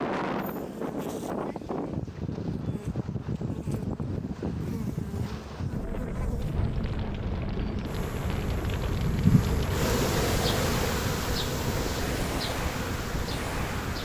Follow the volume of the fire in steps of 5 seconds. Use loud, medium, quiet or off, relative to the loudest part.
off, loud, loud.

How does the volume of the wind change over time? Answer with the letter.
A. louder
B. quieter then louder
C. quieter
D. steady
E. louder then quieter
D.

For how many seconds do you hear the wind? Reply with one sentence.
The wind can be heard for 14 seconds in total.